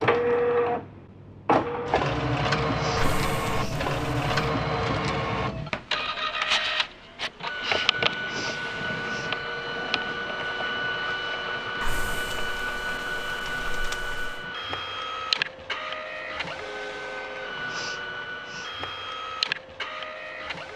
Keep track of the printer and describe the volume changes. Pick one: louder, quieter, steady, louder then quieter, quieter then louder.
quieter.